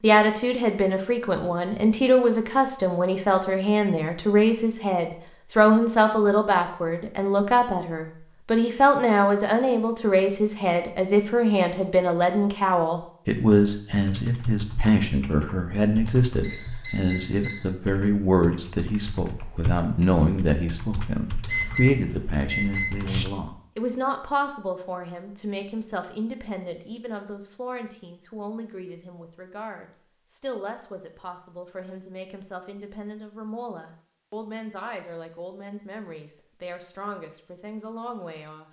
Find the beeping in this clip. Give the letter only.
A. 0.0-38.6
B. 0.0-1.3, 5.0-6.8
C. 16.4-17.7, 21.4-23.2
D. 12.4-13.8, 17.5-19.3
C.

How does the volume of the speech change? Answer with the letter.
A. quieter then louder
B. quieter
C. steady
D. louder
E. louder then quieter
B.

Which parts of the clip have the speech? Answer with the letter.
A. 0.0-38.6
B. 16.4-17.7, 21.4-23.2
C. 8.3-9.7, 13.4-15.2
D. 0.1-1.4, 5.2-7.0
A.